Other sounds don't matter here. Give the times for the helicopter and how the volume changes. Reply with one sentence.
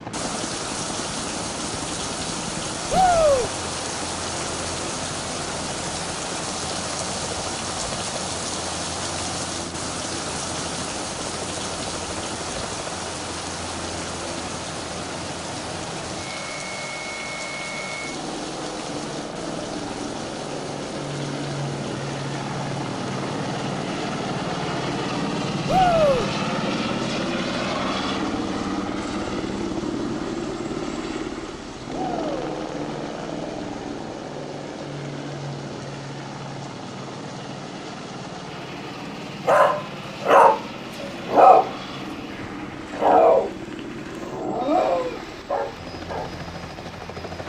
The helicopter can be heard from 0.0 to 47.4 s, getting louder then quieter.